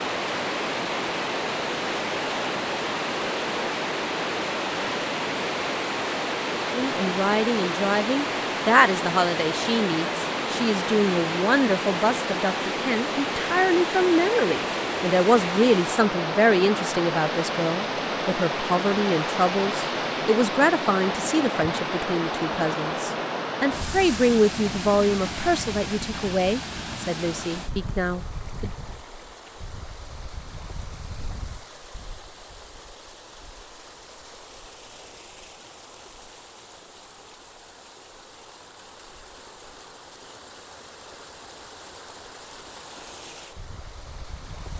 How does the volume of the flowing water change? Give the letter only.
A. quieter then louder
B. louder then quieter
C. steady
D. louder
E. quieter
E.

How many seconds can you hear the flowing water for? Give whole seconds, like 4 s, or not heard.
45 s.